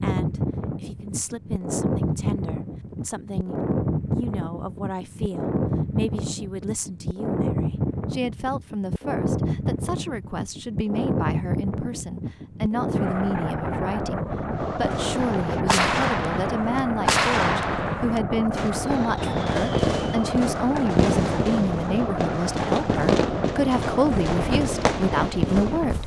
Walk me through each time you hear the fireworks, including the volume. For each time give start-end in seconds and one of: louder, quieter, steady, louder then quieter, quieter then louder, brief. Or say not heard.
14.6-26.0 steady.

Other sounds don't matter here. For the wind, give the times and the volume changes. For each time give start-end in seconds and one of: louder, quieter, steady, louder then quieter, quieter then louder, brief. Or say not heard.
0.0-26.0 steady.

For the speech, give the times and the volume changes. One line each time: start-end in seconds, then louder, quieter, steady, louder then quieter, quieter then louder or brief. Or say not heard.
0.0-26.0 louder.